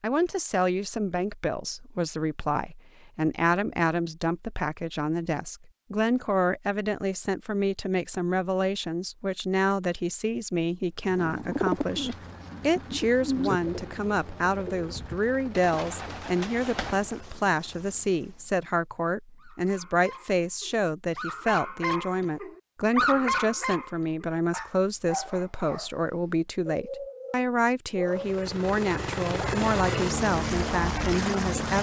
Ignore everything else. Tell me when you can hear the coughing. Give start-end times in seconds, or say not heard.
not heard.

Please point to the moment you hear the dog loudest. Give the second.
23 s.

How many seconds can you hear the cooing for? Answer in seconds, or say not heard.
6 s.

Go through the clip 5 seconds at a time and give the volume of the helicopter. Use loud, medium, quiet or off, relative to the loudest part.
off, off, quiet, quiet, off, loud, loud.